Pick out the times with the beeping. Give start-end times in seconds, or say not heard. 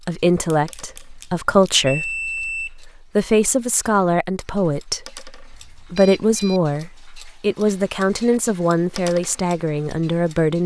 0.5-2.7, 5.5-6.7.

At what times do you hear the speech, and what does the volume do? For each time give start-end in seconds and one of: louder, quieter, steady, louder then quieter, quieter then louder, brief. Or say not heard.
0.1-10.6 steady.